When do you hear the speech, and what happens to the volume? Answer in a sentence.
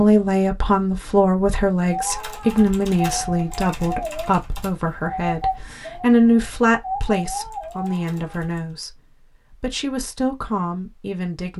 The speech can be heard from 0.0 to 11.5 s, getting quieter.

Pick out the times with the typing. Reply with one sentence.
You can hear the typing from 1.9 to 8.6 s.